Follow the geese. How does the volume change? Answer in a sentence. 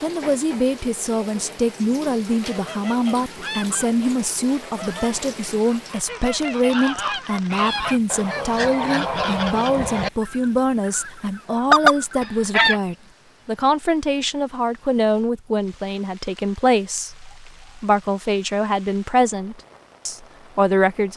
The loudness of the geese goes up.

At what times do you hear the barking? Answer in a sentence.
The barking can't be heard in this clip.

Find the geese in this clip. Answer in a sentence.
The geese can be heard from 2.3 to 12.8 s.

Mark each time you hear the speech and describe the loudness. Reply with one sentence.
You can hear the speech from 0.0 to 21.1 s, at a steady volume.